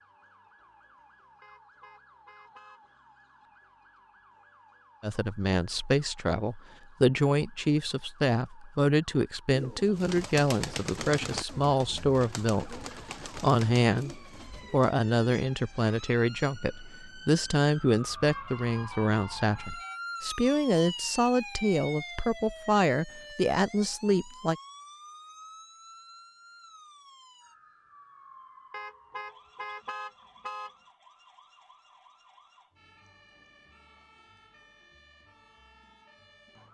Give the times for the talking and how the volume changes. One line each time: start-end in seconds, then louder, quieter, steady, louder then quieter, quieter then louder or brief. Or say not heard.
5.0-24.6 steady.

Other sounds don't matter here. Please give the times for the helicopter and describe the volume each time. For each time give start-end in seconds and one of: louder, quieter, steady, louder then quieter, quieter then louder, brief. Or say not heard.
not heard.